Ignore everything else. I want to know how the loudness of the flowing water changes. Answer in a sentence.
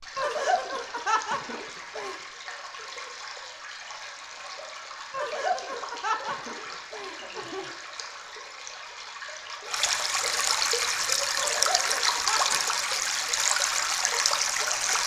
The volume of the flowing water goes up.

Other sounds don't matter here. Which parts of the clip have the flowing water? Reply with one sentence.
The flowing water can be heard from 0.0 to 15.0 s.